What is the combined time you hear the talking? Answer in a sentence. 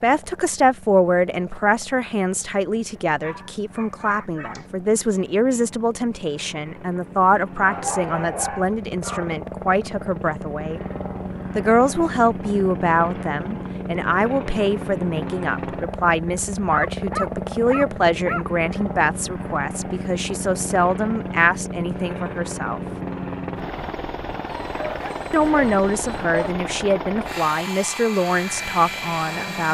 You can hear the talking for 26 seconds altogether.